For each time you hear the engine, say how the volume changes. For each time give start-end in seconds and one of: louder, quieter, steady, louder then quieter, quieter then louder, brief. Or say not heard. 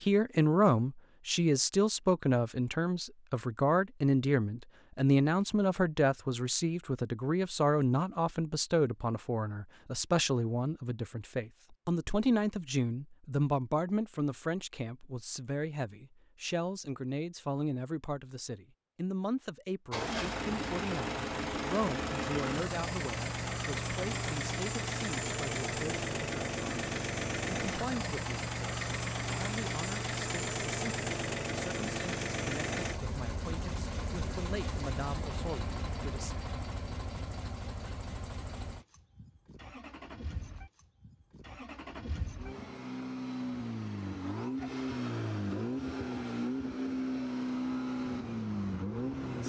19.9-49.4 quieter then louder.